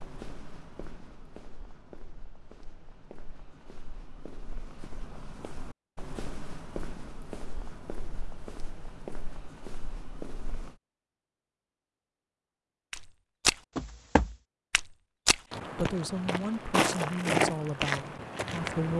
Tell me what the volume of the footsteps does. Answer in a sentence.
The loudness of the footsteps goes up.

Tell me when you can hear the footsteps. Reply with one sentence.
You can hear the footsteps from 0.0 to 10.8 s and from 12.9 to 18.9 s.